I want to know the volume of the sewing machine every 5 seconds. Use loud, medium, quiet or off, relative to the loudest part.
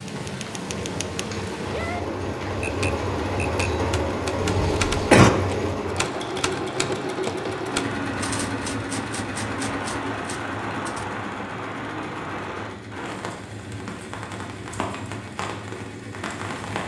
loud, loud, medium, medium.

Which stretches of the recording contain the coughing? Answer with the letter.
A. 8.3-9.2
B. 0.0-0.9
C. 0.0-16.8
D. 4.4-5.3
D.